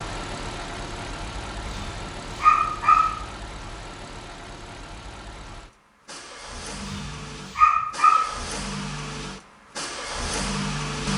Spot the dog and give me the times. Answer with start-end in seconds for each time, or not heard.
1.6-3.1, 6.8-8.3.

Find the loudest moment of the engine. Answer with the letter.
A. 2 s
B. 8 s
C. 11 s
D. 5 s
C.